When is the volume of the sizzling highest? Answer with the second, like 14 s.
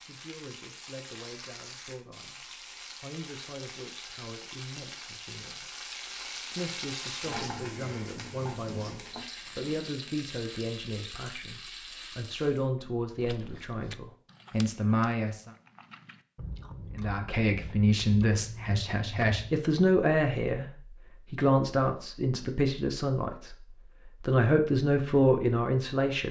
7 s.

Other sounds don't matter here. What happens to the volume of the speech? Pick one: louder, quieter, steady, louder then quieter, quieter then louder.
louder.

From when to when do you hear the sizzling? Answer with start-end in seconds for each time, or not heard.
0.0-12.7.